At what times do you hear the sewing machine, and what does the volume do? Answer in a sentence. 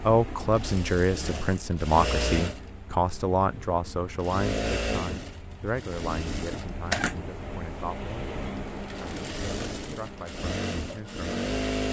The sewing machine can be heard from 0.0 to 11.8 s, at a steady volume.